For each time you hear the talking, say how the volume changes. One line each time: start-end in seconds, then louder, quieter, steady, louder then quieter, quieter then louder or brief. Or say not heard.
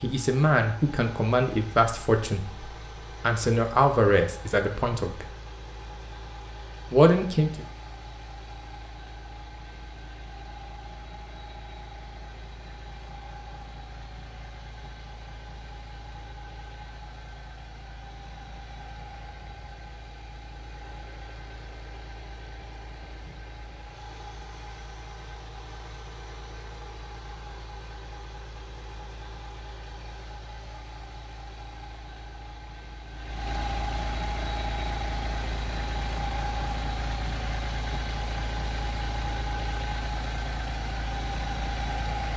0.0-5.2 quieter then louder
6.9-7.7 brief.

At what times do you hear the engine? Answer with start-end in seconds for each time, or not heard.
0.0-42.3.